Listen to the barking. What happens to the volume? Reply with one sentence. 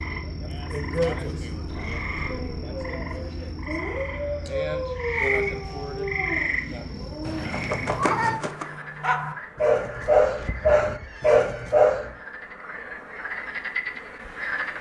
The loudness of the barking goes up.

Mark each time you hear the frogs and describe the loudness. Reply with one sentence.
You can hear the frogs from 0.0 to 14.7 s, getting quieter then louder.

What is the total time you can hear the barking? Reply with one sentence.
The barking can be heard for 10 seconds in total.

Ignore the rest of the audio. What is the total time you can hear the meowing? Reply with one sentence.
You can hear the meowing for 4 seconds altogether.